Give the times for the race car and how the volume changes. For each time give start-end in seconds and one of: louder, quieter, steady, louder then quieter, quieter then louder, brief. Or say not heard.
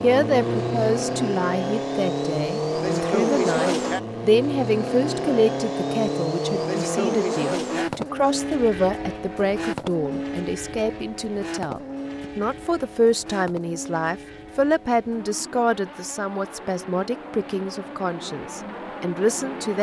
0.0-19.7 quieter.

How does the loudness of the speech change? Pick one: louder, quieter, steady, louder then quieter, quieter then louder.
steady.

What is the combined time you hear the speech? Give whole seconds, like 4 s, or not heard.
20 s.